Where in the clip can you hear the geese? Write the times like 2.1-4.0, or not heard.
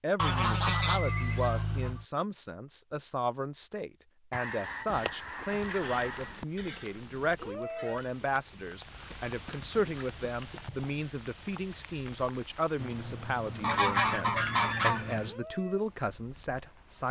0.1-2.0, 4.3-6.4, 9.1-11.1, 13.6-15.2.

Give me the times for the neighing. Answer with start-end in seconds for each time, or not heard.
0.8-1.6, 6.5-8.1, 12.8-15.3.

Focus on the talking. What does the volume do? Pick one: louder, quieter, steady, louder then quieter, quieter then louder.
steady.